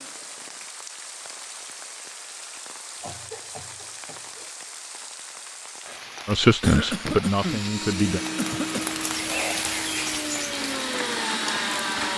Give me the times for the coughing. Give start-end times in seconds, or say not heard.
3.0-4.5, 6.6-7.7, 8.3-8.8.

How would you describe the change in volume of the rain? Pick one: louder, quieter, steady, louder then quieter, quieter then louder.
louder.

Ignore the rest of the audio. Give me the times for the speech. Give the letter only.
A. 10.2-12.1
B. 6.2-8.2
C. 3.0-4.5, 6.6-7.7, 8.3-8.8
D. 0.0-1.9
B.